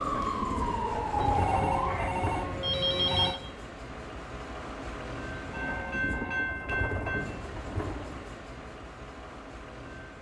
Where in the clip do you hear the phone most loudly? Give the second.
3 s.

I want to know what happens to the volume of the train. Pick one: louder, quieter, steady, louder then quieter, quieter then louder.
louder then quieter.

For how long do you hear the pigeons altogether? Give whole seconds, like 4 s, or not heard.
5 s.